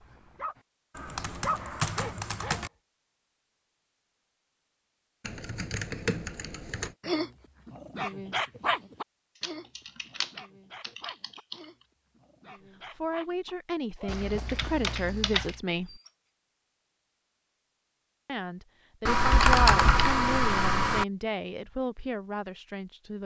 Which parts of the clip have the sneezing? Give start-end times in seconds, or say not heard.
not heard.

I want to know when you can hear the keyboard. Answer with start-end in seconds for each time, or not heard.
0.9-2.7, 5.2-7.0, 9.4-11.6, 14.1-15.6, 19.1-21.1.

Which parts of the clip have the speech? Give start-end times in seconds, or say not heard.
12.9-16.0, 18.2-23.2.